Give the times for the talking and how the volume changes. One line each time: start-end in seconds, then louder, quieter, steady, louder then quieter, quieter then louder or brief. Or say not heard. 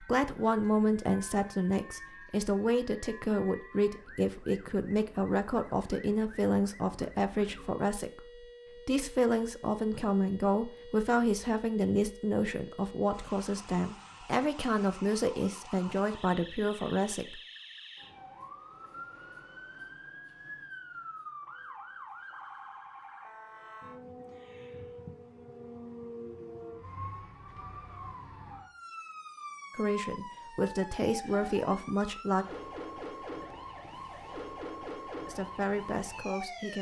0.0-17.4 steady
29.8-32.5 brief
35.2-36.7 brief.